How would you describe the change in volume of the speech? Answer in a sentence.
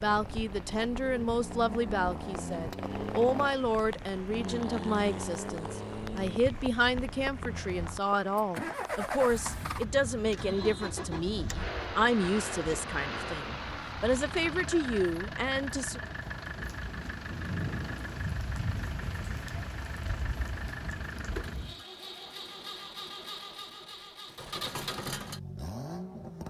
The volume of the speech stays about the same.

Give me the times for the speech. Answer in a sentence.
You can hear the speech from 0.0 to 16.0 s.